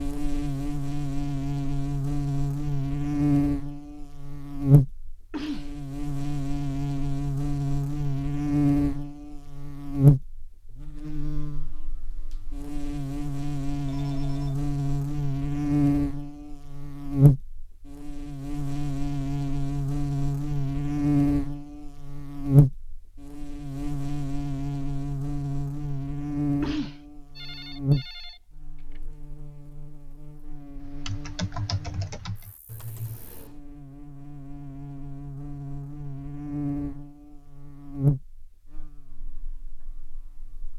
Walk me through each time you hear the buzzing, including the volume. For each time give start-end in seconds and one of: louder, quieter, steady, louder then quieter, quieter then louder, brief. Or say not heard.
0.0-40.7 quieter.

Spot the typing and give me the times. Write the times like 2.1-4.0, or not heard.
30.8-33.5.